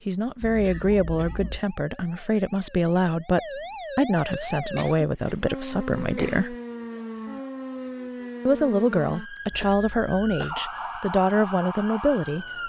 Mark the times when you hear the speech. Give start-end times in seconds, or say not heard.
0.1-6.5, 8.4-12.4.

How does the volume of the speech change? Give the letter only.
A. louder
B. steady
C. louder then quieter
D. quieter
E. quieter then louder
B.